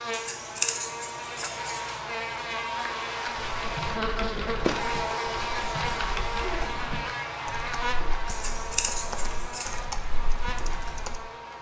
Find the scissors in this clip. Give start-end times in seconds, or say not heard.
0.1-2.0, 8.2-9.8.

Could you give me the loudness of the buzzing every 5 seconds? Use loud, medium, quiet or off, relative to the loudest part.
loud, loud, medium.